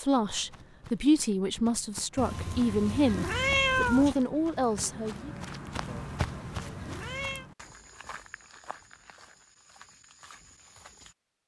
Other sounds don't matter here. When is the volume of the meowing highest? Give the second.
4 s.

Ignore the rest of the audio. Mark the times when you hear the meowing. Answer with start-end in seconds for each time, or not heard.
2.1-4.2, 5.8-7.5.